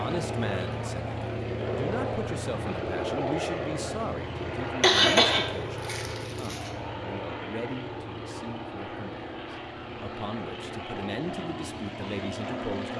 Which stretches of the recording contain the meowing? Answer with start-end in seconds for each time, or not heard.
not heard.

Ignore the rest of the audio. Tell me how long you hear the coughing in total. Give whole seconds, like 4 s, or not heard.
2 s.